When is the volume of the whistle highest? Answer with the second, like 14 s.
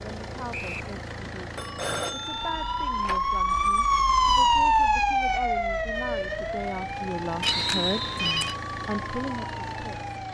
8 s.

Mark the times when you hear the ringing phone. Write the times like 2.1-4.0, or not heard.
1.6-3.2, 7.4-8.6.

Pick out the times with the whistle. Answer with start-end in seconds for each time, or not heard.
0.5-0.9, 7.5-8.3.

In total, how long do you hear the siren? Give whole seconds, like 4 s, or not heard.
8 s.